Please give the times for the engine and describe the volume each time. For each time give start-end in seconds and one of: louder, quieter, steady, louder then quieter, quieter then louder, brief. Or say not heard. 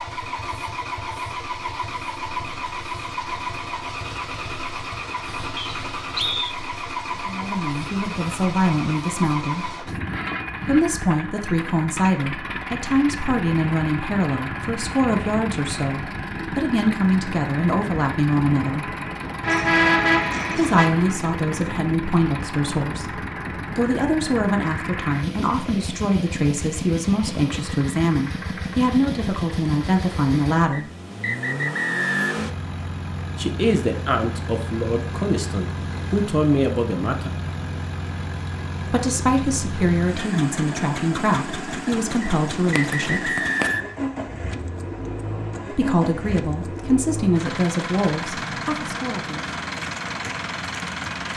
0.0-51.3 steady.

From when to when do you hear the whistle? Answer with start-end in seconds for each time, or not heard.
5.5-6.5, 30.7-32.3, 42.2-44.0.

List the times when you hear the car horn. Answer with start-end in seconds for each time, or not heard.
19.4-20.9.